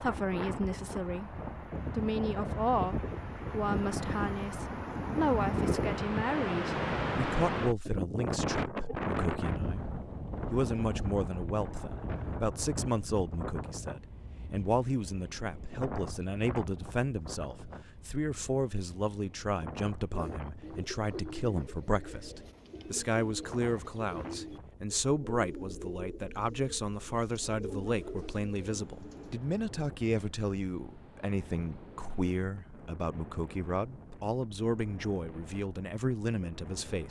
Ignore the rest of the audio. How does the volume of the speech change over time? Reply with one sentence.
The volume of the speech stays about the same.